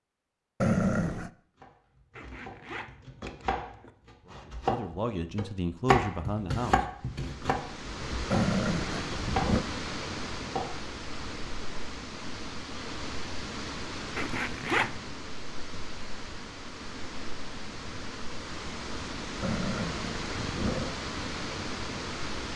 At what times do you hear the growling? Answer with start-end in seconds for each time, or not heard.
0.6-1.3, 8.3-9.7, 19.4-20.9.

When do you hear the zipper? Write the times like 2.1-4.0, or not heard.
2.1-3.9, 14.2-15.1.